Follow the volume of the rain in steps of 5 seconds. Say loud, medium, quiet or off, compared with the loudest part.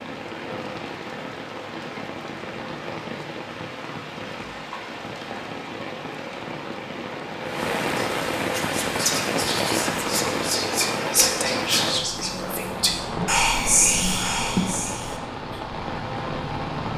medium, loud, loud, loud.